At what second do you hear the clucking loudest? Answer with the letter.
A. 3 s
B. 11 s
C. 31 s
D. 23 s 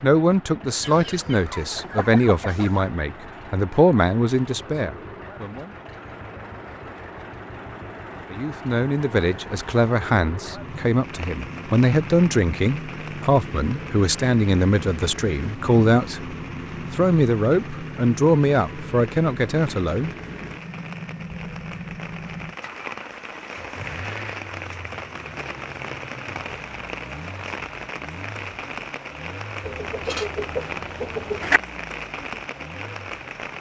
C.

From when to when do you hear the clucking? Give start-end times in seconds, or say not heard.
0.8-2.9, 29.6-31.6.